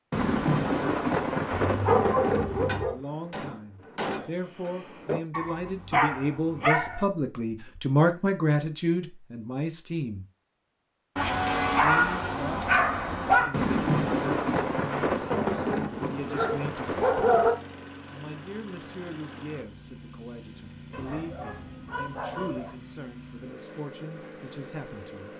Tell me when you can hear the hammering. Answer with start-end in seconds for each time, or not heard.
2.6-5.2.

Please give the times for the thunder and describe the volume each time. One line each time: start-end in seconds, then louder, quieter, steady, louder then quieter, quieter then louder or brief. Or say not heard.
0.1-2.8 brief
13.5-17.5 quieter.